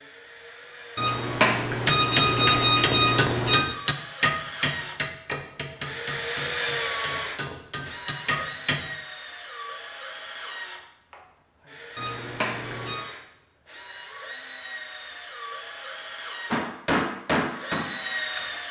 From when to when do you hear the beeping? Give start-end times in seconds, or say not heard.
0.9-3.6, 11.9-13.1.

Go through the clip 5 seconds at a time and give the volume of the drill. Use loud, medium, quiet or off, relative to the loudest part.
medium, loud, medium, loud.